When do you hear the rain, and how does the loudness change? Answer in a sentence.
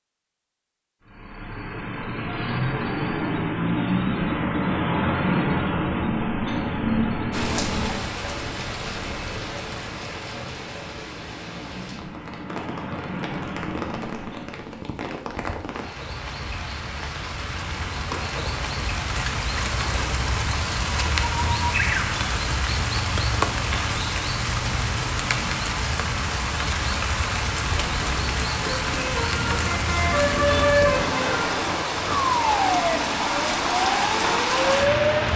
You can hear the rain from 7.3 to 35.3 s, getting louder.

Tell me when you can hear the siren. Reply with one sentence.
You can hear the siren from 32.0 to 35.3 s.